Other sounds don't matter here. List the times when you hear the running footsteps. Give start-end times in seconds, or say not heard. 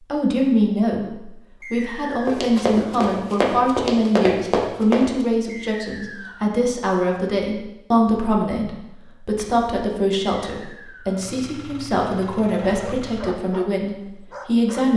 2.2-5.2.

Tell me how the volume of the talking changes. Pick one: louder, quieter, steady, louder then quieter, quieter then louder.
steady.